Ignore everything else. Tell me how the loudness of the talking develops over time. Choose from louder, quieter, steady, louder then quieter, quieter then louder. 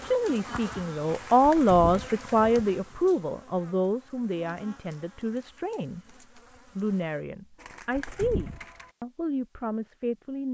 quieter.